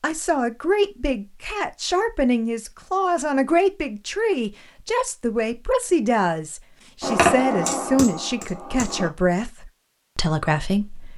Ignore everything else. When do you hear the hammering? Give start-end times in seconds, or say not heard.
7.0-9.1.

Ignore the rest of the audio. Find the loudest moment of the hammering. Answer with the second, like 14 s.
7 s.